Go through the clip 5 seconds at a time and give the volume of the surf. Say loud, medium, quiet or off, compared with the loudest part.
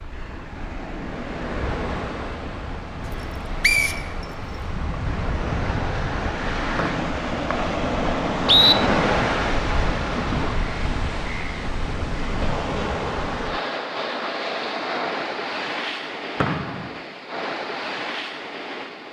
medium, loud, loud, medium.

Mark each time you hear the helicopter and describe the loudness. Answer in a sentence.
The helicopter can't be heard in this clip.